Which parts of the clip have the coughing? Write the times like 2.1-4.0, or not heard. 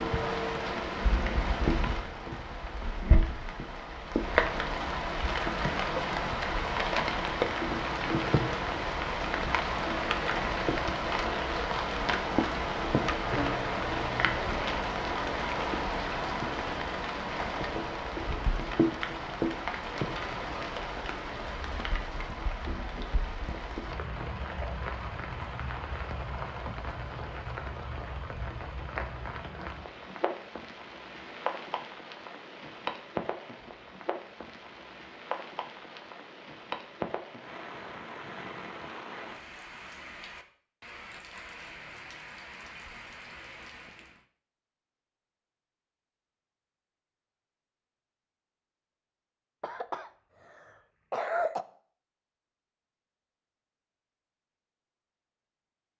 13.2-14.4, 49.6-51.6.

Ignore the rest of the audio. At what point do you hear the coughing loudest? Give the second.
51 s.